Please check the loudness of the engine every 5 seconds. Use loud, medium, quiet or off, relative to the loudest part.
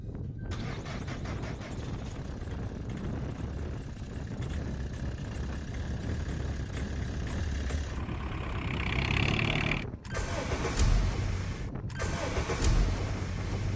quiet, loud, loud.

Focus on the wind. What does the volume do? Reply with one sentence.
The volume of the wind stays about the same.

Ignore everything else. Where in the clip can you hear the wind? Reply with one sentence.
The wind can be heard from 0.0 to 13.7 s.